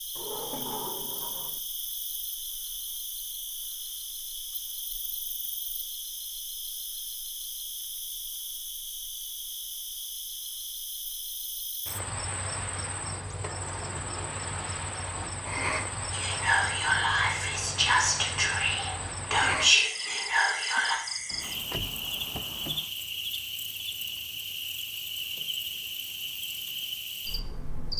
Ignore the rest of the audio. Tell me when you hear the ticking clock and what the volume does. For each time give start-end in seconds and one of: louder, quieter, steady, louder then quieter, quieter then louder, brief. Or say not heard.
not heard.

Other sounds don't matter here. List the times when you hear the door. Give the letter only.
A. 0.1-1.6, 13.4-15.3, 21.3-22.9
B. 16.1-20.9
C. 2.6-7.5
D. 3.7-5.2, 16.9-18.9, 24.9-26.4
A.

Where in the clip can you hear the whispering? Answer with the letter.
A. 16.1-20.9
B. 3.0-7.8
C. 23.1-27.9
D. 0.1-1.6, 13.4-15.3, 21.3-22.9
A.